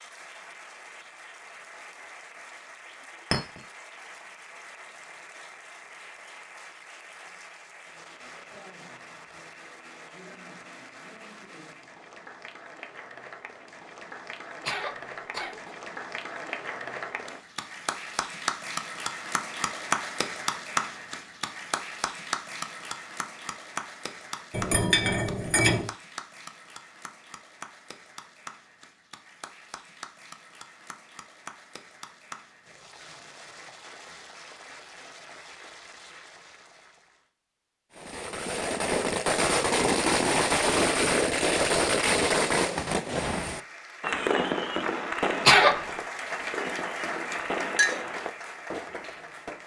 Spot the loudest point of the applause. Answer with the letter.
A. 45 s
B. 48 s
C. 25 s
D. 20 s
D.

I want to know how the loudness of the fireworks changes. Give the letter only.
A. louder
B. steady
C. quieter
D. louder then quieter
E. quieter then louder
C.